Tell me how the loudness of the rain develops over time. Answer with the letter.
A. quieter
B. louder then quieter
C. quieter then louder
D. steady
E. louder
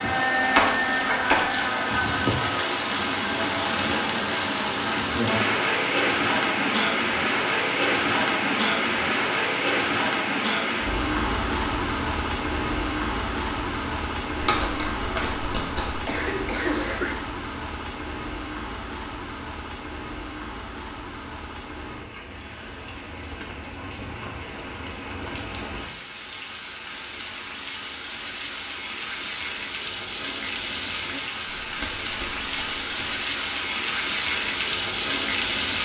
C.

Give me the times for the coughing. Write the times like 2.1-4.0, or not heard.
16.1-17.2.